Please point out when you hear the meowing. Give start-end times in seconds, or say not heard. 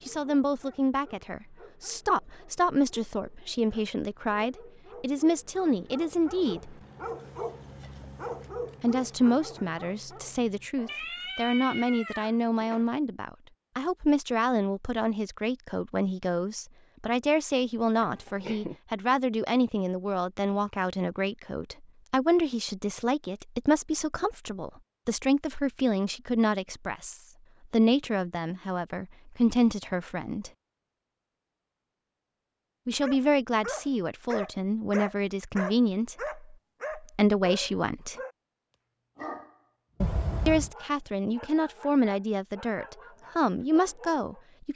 10.8-12.8, 18.0-18.8, 40.0-40.7.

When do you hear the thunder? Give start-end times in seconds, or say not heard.
not heard.